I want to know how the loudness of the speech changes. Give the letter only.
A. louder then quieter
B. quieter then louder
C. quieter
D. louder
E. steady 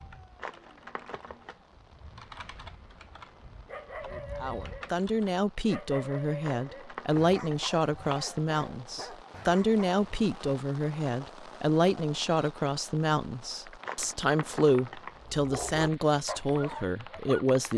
E.